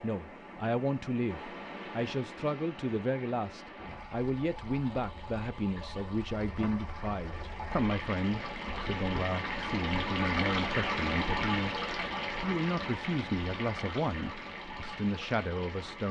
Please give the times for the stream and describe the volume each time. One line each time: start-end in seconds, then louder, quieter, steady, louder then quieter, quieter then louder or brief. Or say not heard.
0.0-16.0 louder then quieter.